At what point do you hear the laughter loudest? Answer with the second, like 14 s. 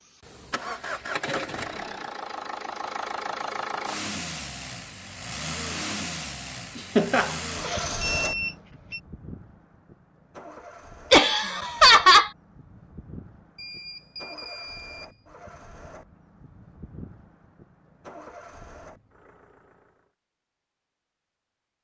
12 s.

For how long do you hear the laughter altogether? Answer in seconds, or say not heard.
2 s.